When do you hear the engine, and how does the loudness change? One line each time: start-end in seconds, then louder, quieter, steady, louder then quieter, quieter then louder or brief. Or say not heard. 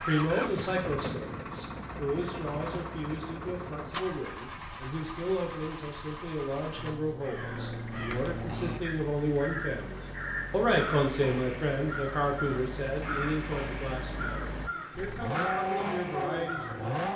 0.0-17.1 quieter then louder.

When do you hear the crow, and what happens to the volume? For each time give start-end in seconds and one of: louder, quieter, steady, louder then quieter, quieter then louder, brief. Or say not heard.
6.8-16.9 steady.